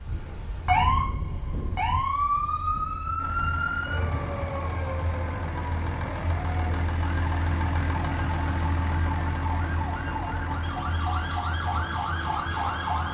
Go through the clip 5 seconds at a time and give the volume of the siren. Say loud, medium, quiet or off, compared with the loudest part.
loud, medium, loud.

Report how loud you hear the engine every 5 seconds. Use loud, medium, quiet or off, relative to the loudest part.
medium, loud, medium.